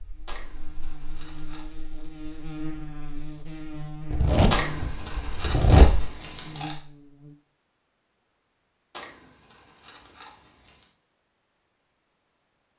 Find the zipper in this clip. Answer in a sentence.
You can hear the zipper from 4.1 to 6.1 s.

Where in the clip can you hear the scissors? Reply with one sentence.
The scissors can be heard from 0.2 to 1.7 s, from 4.5 to 6.8 s and from 8.9 to 10.9 s.